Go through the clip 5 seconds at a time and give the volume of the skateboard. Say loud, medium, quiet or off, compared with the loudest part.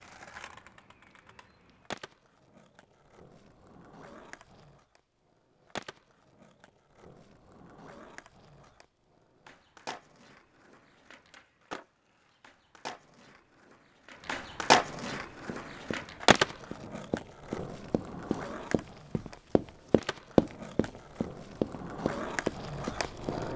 quiet, quiet, loud, loud, medium.